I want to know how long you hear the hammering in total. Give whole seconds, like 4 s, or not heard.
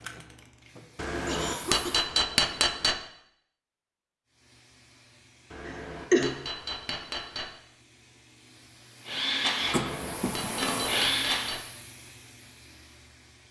6 s.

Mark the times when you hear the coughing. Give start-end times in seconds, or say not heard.
0.0-2.1, 5.7-6.3, 9.7-10.5.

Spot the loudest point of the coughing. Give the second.
6 s.